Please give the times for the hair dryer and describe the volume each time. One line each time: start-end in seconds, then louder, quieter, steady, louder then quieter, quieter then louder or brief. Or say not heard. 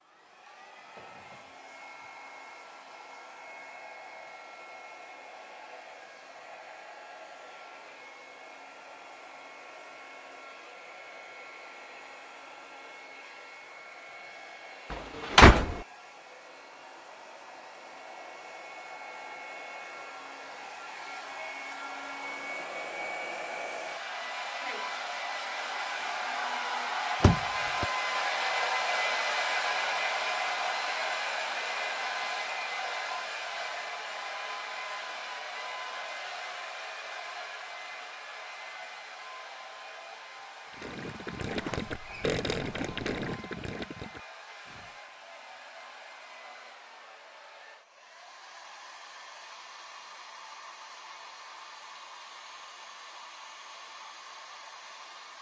0.0-55.3 louder then quieter.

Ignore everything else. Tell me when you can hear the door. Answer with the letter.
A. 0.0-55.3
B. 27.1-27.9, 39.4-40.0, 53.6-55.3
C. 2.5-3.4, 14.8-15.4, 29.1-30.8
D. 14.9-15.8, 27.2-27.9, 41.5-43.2
D.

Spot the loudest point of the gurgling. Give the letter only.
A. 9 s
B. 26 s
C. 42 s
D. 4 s
C.